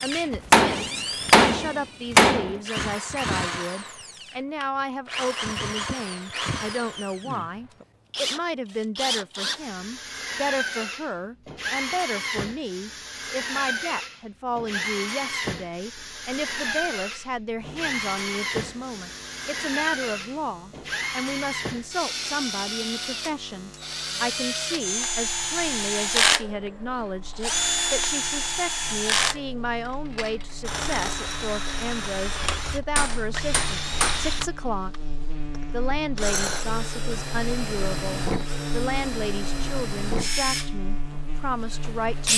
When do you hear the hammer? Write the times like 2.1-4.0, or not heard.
0.3-2.6, 32.5-34.5.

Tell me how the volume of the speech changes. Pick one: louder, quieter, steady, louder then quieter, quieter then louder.
steady.